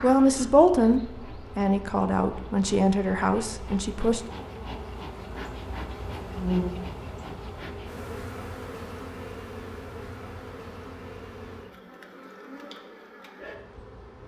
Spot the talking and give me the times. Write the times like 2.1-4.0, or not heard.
0.0-4.2.